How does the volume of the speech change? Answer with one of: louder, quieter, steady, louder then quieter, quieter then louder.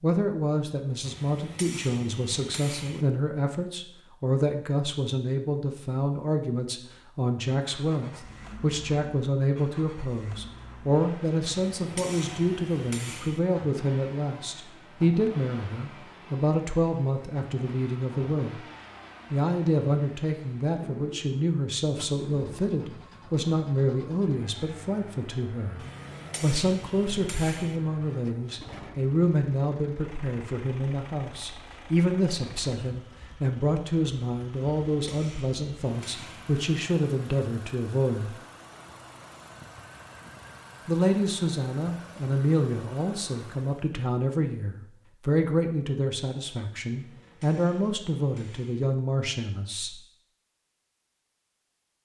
steady.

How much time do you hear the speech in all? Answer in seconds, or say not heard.
46 s.